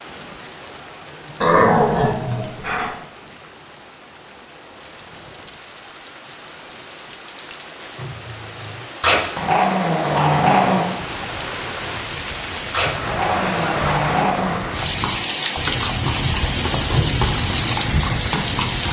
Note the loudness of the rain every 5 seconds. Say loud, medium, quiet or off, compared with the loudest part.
quiet, medium, loud, loud.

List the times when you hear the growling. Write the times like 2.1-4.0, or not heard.
1.4-3.0, 9.0-10.9, 12.7-14.7.